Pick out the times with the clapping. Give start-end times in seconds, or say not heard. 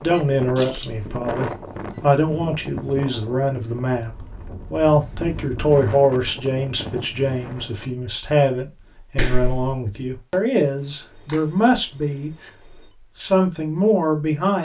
9.2-9.7.